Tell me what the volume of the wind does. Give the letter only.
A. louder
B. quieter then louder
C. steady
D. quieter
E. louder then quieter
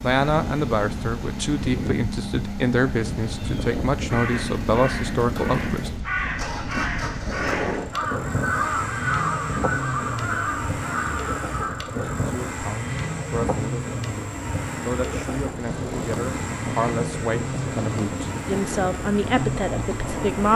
C.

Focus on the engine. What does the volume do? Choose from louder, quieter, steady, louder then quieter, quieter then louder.
steady.